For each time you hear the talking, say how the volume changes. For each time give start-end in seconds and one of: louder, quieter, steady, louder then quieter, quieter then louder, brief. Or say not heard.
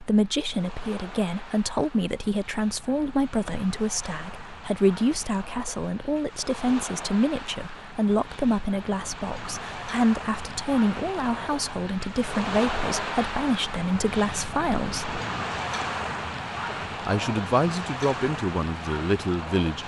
0.0-15.2 steady
17.1-19.8 brief.